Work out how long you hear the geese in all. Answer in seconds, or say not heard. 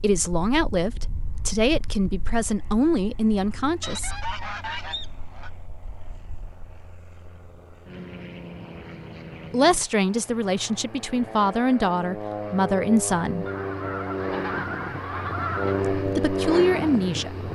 4 s.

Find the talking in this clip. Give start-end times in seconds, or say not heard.
0.0-4.2, 9.5-13.4, 15.9-17.4.